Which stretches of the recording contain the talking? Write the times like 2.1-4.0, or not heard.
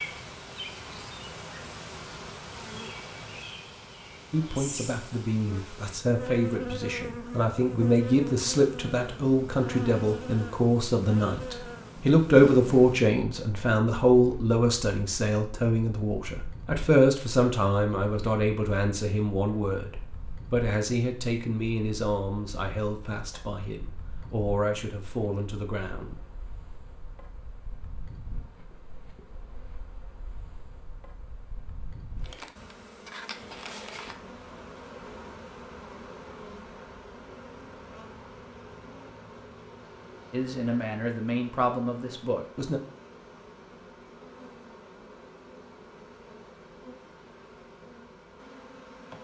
4.3-26.2, 40.3-42.8.